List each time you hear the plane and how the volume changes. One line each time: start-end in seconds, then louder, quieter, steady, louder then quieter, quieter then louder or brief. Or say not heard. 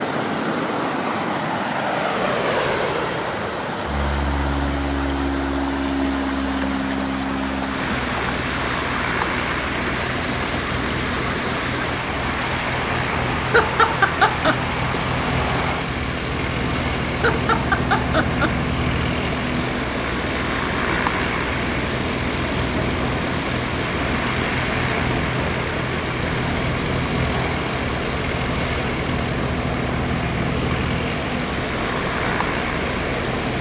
0.0-33.5 steady.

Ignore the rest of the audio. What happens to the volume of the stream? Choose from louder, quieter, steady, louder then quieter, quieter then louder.
steady.